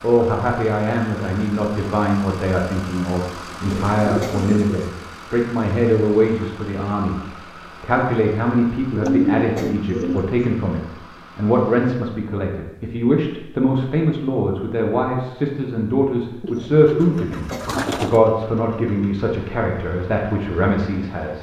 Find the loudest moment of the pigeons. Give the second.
9 s.